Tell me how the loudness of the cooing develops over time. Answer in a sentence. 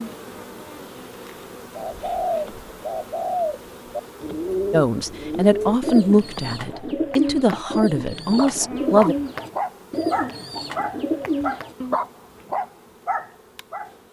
The loudness of the cooing stays about the same.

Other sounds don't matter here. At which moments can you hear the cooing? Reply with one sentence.
You can hear the cooing from 1.8 to 11.8 s.